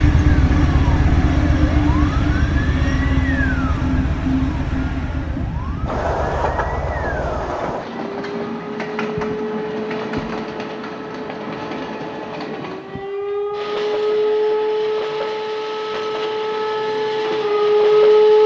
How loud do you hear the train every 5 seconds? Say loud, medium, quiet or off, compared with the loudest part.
loud, loud, medium, medium.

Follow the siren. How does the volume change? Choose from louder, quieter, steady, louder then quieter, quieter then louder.
quieter then louder.